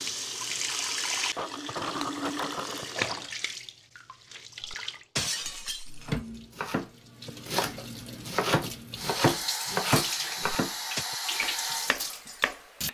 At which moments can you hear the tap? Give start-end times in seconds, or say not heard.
0.0-12.8.